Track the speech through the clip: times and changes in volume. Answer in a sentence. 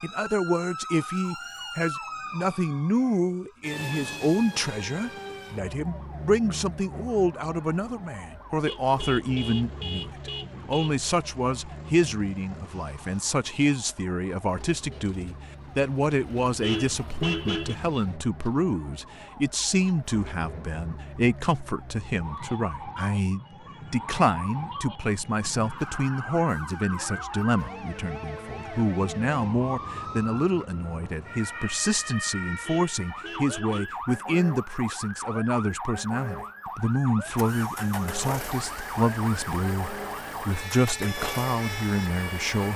You can hear the speech from 0.0 to 42.7 s, at a steady volume.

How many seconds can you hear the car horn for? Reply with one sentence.
You can hear the car horn for 5 seconds altogether.